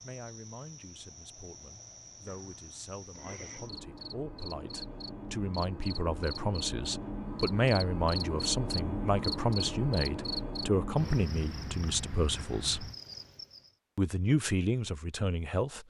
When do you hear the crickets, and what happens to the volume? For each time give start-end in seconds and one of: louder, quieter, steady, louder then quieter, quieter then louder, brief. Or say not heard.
0.0-13.8 louder then quieter.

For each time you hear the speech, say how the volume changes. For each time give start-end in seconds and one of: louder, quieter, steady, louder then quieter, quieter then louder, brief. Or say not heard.
0.0-12.9 louder
13.9-15.8 brief.